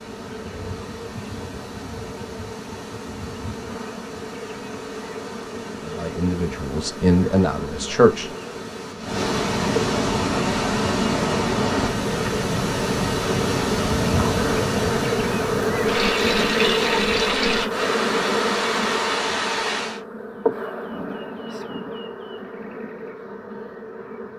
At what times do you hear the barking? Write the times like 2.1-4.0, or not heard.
not heard.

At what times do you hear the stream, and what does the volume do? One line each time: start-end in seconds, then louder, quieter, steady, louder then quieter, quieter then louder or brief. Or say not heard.
0.0-20.0 louder.